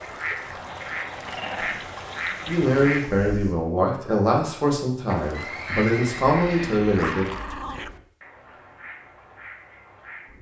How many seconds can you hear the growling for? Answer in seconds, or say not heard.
4 s.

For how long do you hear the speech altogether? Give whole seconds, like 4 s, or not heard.
5 s.